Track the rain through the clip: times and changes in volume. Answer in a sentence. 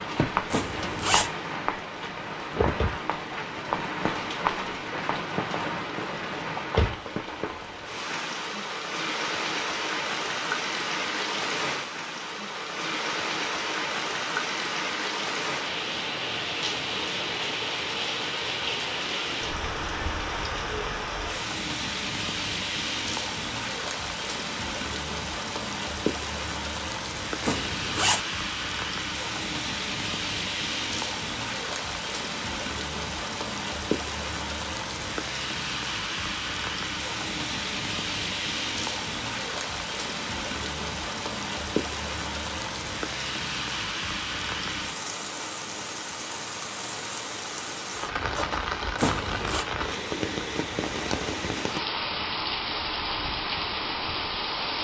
The rain can be heard from 0.0 to 54.7 s, at a steady volume.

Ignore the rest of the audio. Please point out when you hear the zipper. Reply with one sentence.
The zipper can be heard from 0.5 to 1.3 s, from 27.4 to 28.2 s and from 49.0 to 49.6 s.